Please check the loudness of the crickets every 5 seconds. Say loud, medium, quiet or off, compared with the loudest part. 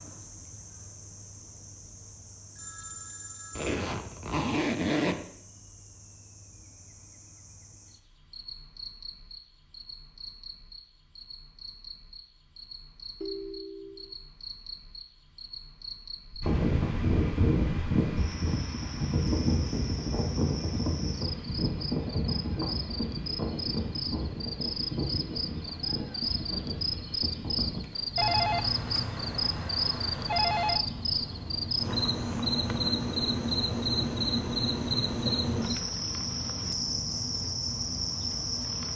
quiet, quiet, quiet, quiet, medium, loud, loud, loud.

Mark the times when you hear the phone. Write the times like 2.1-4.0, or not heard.
2.5-3.8, 13.2-14.2, 28.1-30.9.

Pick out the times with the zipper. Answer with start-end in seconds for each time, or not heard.
3.5-5.2.